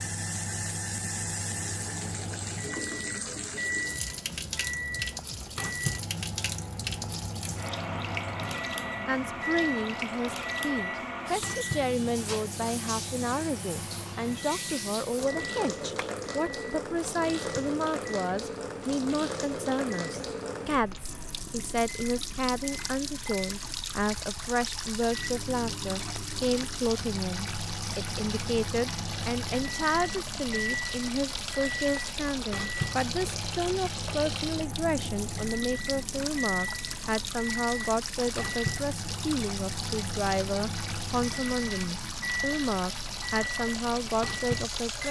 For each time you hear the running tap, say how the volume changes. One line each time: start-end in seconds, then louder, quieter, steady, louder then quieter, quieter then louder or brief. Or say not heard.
0.0-45.0 steady.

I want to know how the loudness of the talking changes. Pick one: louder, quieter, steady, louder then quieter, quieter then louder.
steady.